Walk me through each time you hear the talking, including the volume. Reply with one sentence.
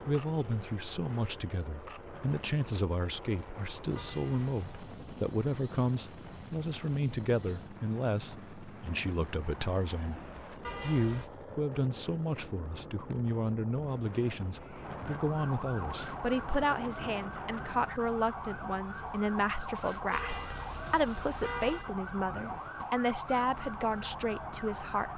You can hear the talking from 0.1 to 25.1 s, at a steady volume.